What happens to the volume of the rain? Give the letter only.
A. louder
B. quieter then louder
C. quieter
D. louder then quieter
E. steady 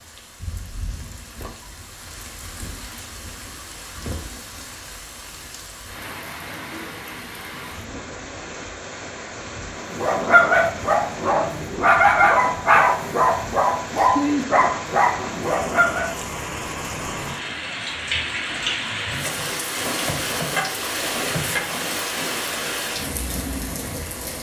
A.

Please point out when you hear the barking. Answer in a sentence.
The barking can be heard from 9.8 to 16.1 s.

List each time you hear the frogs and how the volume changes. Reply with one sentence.
You can't hear the frogs here.